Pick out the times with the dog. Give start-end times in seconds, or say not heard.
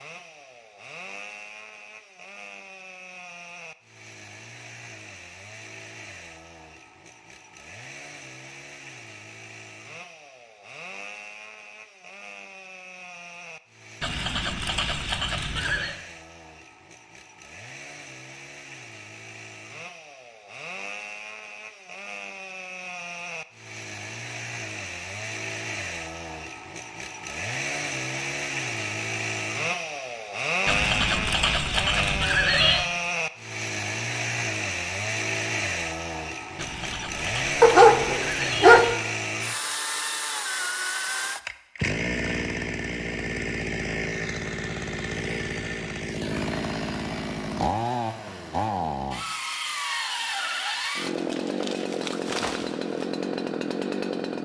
37.6-39.0.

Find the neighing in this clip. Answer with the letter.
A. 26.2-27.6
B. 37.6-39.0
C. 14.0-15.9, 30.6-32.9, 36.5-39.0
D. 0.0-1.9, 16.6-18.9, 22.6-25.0
C.